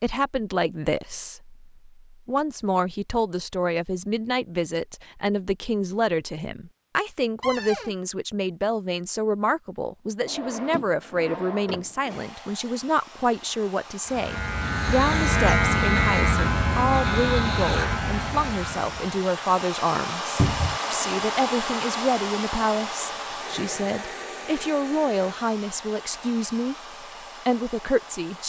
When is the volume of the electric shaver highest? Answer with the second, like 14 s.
16 s.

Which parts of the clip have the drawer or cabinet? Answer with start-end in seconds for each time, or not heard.
7.4-8.0, 10.2-12.2, 20.4-20.8.